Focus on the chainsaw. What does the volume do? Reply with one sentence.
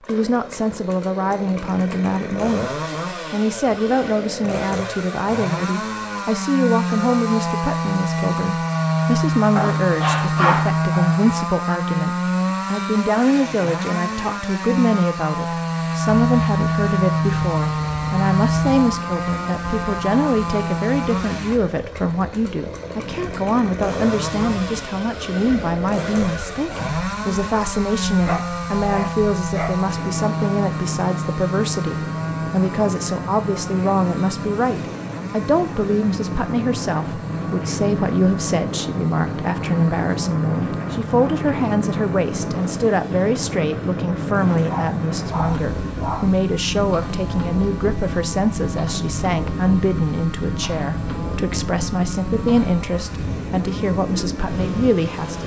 The volume of the chainsaw goes down.